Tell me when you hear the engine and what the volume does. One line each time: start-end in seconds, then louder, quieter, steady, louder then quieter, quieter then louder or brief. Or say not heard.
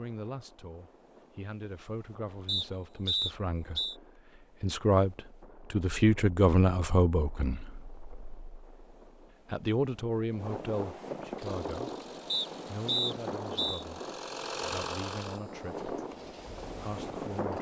11.3-17.5 louder then quieter.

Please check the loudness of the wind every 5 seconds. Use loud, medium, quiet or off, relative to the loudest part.
quiet, quiet, loud, loud.